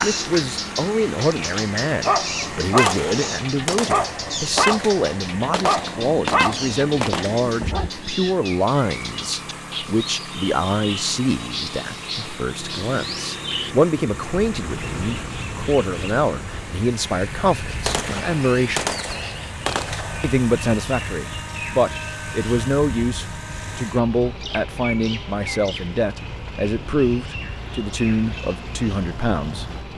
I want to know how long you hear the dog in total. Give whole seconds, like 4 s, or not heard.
7 s.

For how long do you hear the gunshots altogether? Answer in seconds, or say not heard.
7 s.